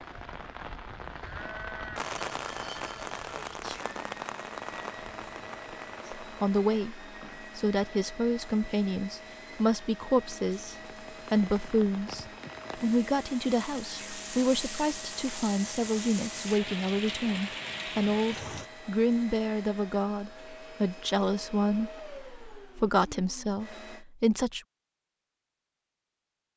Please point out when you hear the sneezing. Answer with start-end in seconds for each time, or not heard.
3.5-4.0, 13.8-14.2.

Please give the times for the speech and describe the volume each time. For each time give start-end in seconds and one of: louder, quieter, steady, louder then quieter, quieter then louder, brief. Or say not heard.
6.2-24.6 steady.